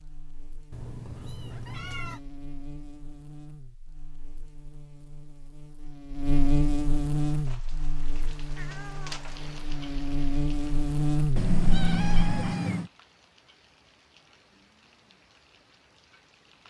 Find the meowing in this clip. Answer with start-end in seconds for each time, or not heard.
0.7-2.2, 8.6-9.3, 11.3-12.9.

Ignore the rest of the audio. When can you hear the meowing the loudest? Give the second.
12 s.